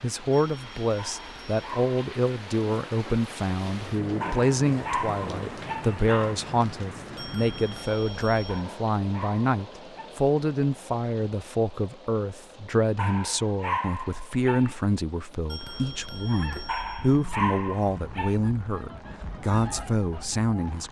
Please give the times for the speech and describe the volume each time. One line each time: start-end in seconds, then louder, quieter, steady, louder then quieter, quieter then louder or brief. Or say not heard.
0.0-20.8 steady.